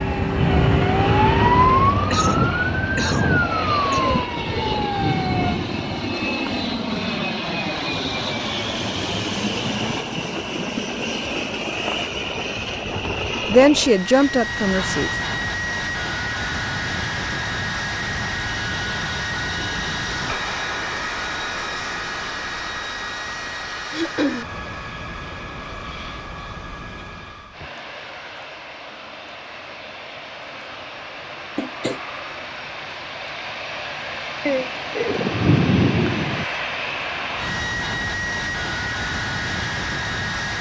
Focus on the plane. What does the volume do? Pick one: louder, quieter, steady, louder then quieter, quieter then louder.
quieter then louder.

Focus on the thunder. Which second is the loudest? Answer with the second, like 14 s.
36 s.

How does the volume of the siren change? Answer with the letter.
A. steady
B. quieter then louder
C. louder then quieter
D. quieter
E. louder
D.